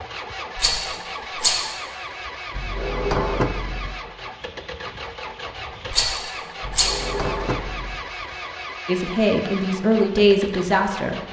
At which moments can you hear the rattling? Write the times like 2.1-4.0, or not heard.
0.6-1.8, 5.9-7.1.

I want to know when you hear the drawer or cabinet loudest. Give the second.
3 s.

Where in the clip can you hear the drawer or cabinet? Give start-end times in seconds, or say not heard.
2.5-4.0, 6.6-8.0.